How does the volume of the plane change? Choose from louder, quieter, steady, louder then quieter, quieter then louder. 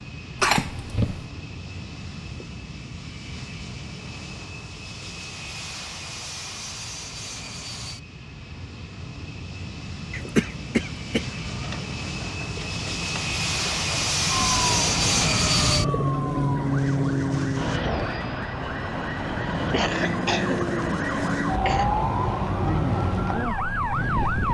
louder then quieter.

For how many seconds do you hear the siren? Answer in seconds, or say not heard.
10 s.